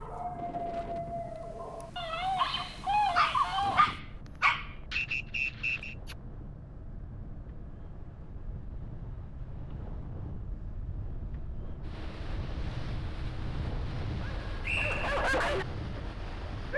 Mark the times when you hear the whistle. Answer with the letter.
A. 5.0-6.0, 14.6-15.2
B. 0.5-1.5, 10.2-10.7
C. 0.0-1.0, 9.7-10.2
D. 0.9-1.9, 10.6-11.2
A.